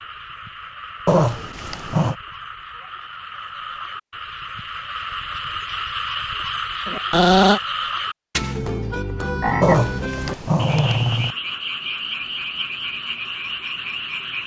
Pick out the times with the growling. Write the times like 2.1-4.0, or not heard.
1.1-2.1, 6.8-7.6, 9.6-11.3.